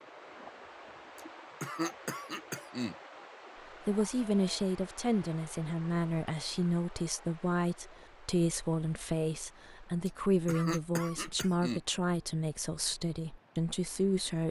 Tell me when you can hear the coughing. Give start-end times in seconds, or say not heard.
1.1-3.0, 10.1-11.8.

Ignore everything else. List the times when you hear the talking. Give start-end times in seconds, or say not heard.
3.9-14.4.